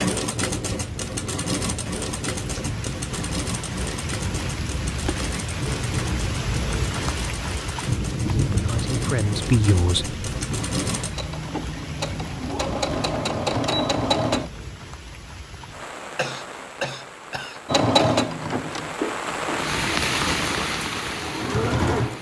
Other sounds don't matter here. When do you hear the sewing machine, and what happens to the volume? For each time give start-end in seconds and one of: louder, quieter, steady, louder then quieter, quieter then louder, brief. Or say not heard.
0.0-14.5 quieter then louder
17.6-22.1 quieter then louder.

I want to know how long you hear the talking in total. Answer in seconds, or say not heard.
2 s.